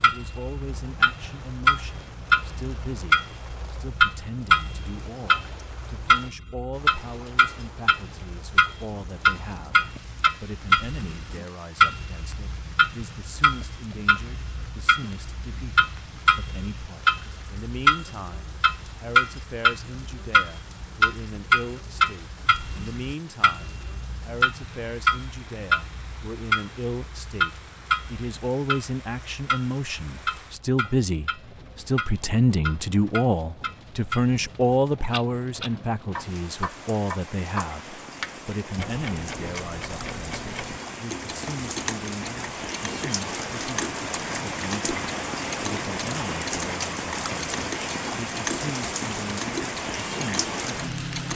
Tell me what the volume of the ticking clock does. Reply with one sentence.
The volume of the ticking clock goes down.